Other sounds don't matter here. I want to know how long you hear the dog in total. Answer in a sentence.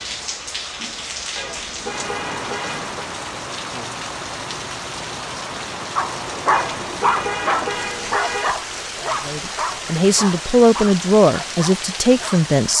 You can hear the dog for 7 seconds altogether.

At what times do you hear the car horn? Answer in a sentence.
The car horn can be heard from 1.4 to 3.0 s and from 6.5 to 8.6 s.